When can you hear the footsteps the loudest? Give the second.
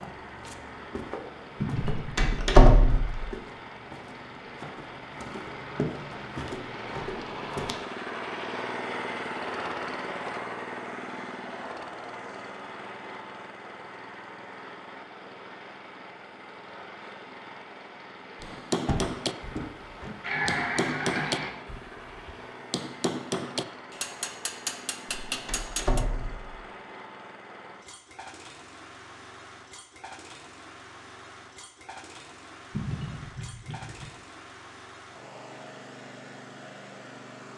6 s.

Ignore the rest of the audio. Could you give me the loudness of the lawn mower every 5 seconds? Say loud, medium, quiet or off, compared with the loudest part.
medium, loud, loud, medium, medium, medium, medium, medium.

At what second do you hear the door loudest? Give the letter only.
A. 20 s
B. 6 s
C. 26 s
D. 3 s
D.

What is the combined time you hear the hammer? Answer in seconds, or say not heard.
8 s.